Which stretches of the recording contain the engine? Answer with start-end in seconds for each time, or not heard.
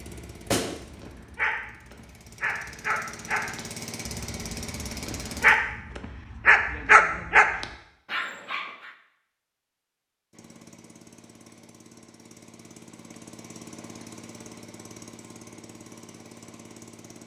0.0-5.5, 10.3-17.2.